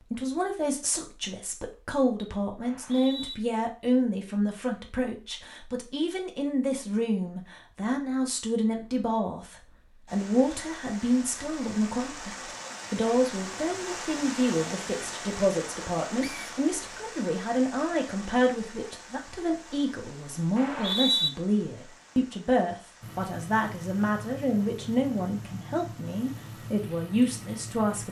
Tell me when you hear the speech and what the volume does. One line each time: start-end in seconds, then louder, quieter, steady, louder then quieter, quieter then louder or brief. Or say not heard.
0.1-28.0 steady.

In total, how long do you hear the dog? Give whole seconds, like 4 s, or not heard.
not heard.